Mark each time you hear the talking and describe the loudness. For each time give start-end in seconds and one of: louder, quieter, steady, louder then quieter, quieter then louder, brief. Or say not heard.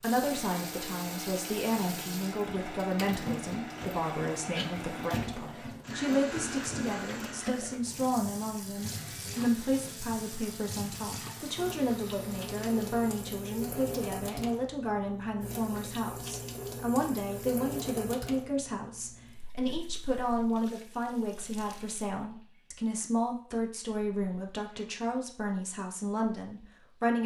0.0-27.2 steady.